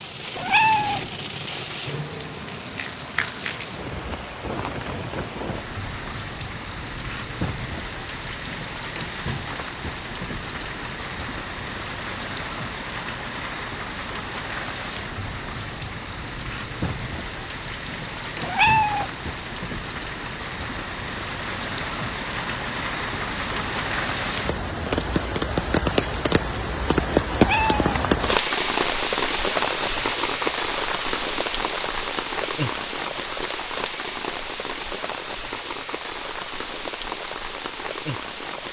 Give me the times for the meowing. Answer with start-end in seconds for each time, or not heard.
0.3-1.1, 18.4-19.1, 27.3-28.1.